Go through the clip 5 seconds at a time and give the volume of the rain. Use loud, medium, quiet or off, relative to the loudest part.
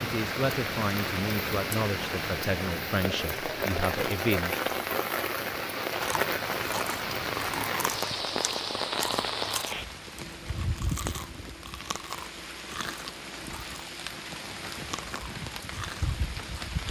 loud, loud, medium, medium.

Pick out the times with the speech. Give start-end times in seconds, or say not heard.
0.0-4.7.